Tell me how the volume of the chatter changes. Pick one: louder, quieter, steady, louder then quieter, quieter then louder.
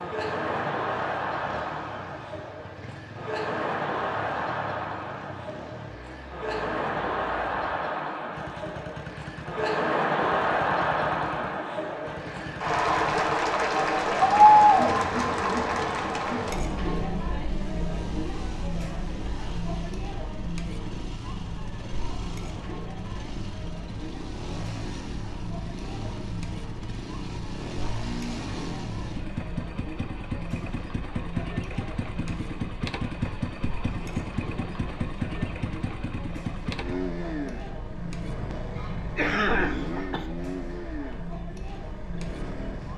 louder then quieter.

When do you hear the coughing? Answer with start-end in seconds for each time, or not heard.
38.8-40.3.